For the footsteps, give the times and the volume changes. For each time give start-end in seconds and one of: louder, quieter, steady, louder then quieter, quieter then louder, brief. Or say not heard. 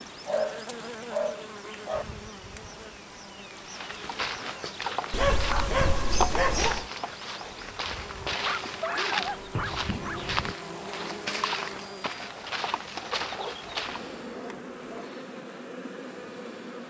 3.5-14.2 steady.